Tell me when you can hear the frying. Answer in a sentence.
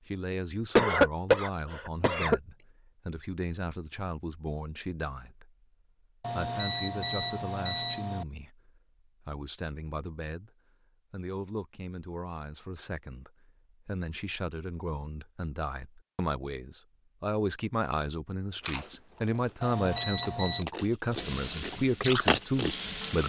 The frying can be heard from 21.1 to 23.2 s.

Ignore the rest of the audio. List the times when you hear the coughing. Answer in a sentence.
You can hear the coughing from 0.8 to 2.4 s.